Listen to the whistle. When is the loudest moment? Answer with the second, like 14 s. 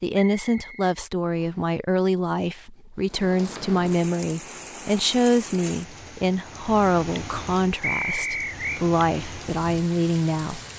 8 s.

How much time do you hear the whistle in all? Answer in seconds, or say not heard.
2 s.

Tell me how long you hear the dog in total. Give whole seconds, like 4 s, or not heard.
not heard.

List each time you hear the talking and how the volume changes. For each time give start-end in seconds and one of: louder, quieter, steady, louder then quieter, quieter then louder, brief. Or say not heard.
0.0-10.6 steady.